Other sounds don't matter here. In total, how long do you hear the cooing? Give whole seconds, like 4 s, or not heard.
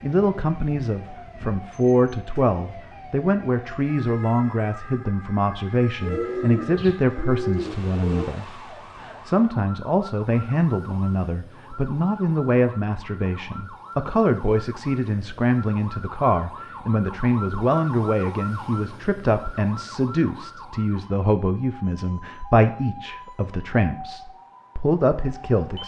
2 s.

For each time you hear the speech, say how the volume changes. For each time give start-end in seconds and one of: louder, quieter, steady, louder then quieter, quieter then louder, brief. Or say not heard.
0.0-25.8 steady.